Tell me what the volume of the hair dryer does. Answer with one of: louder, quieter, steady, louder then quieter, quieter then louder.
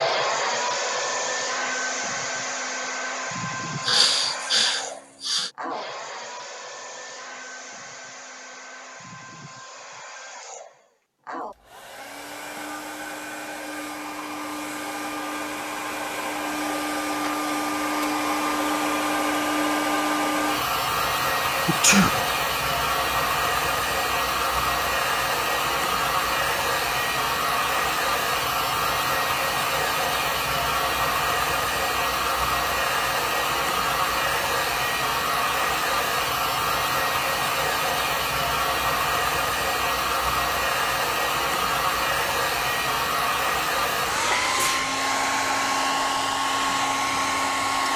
louder.